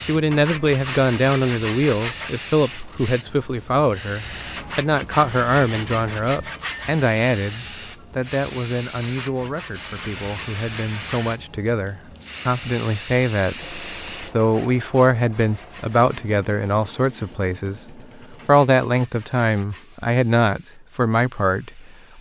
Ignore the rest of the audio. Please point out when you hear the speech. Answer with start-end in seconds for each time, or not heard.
0.0-22.1.